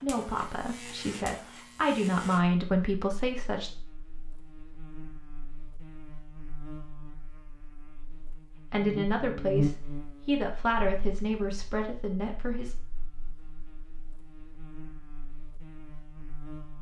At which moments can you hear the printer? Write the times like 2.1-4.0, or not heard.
not heard.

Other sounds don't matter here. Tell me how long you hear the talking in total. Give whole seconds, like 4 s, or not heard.
8 s.